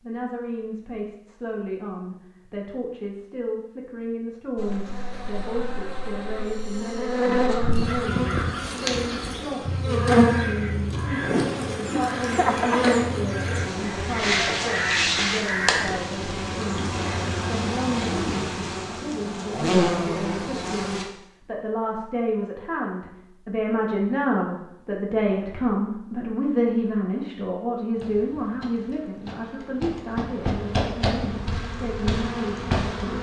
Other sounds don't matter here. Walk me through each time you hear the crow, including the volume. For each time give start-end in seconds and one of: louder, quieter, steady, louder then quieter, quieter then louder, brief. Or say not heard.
7.5-15.9 steady.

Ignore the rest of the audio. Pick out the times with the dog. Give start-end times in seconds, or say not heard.
not heard.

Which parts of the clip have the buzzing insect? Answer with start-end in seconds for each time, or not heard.
4.5-21.1, 27.9-33.1.